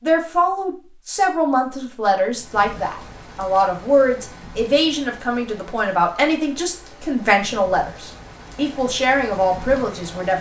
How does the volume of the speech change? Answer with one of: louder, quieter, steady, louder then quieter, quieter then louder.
steady.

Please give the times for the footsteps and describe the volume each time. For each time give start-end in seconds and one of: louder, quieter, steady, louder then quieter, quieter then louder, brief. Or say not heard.
not heard.